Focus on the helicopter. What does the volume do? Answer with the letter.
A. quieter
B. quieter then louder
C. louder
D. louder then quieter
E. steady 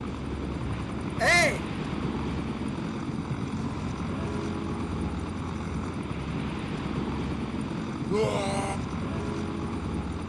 E.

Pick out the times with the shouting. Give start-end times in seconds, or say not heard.
1.2-1.6, 8.1-8.8.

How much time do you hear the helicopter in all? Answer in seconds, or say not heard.
10 s.